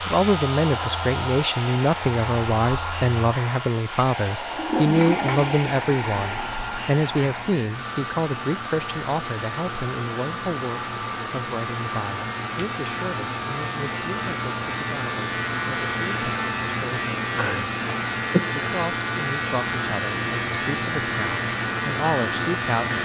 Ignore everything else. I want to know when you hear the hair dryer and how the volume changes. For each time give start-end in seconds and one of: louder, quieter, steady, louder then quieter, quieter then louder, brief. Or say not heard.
0.0-22.9 steady.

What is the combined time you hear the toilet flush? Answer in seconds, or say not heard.
2 s.